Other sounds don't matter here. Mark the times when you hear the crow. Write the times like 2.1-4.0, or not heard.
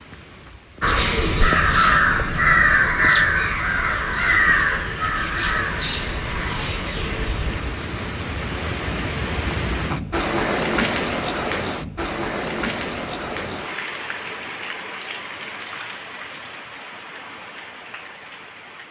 0.8-7.6.